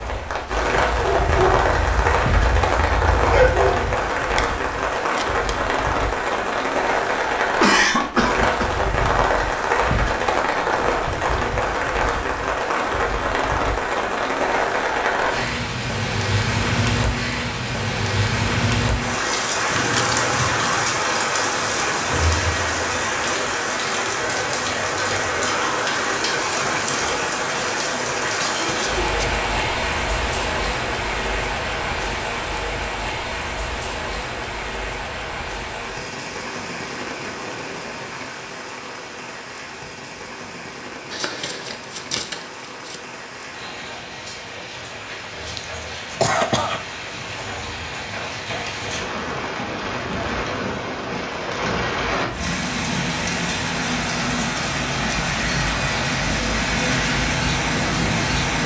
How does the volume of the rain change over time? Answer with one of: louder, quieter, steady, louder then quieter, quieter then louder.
quieter then louder.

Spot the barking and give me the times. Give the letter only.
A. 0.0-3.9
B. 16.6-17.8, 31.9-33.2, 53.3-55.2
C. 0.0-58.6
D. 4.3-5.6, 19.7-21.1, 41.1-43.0
A.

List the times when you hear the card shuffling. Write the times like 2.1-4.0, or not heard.
4.3-5.6, 19.7-21.1, 41.1-43.0.